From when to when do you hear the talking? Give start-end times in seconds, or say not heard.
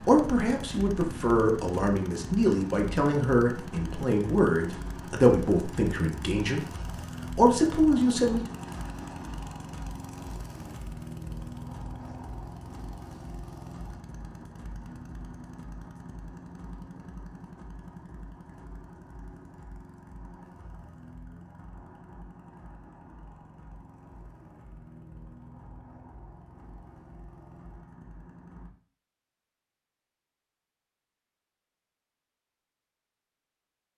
0.1-6.6, 7.3-8.6.